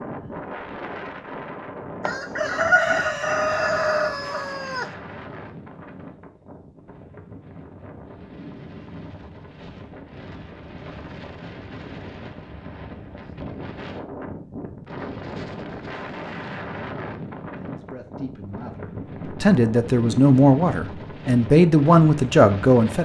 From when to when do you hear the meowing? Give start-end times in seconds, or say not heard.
not heard.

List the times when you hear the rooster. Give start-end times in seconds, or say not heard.
2.0-4.9.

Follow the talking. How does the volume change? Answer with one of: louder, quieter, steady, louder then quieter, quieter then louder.
louder.